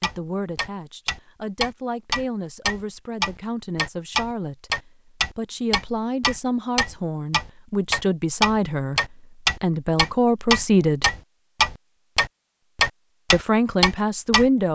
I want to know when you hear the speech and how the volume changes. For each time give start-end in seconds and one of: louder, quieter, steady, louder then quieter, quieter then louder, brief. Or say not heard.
0.0-11.1 louder
13.3-14.6 brief.